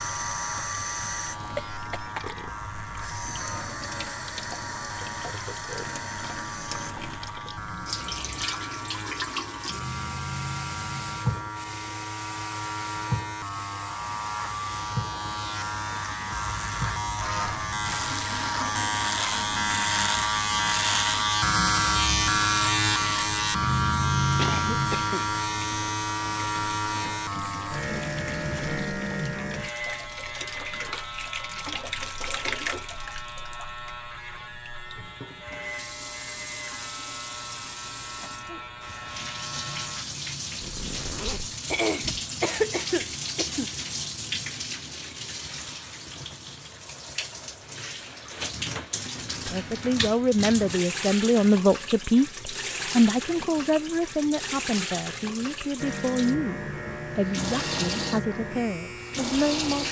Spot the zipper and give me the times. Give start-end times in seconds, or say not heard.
40.6-41.5.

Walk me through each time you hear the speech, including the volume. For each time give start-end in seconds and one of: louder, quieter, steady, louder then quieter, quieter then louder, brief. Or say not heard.
49.5-59.8 quieter.